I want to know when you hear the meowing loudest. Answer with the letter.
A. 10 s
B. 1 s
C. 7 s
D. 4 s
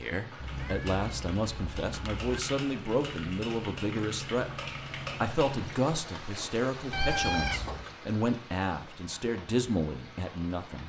C.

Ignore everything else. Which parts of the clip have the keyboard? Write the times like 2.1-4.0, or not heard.
0.5-5.8.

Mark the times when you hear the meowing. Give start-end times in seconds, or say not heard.
0.4-2.4, 6.9-7.8.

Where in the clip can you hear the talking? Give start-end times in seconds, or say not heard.
0.0-4.5, 5.2-10.8.